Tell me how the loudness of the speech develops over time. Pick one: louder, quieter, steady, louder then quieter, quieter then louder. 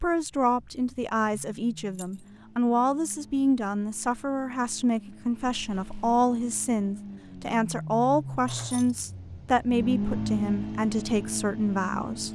steady.